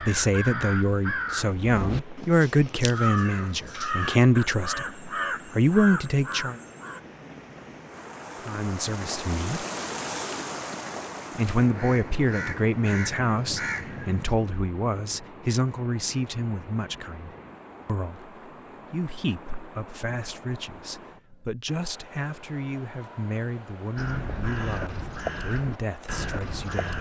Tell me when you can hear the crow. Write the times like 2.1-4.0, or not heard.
0.0-7.0, 11.6-14.3, 23.9-26.9.